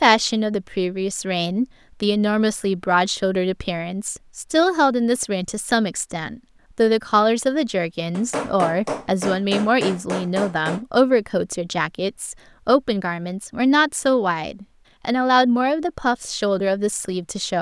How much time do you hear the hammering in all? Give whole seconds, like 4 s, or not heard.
3 s.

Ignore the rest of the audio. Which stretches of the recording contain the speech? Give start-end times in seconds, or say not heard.
0.0-17.5.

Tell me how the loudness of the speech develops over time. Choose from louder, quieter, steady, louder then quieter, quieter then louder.
steady.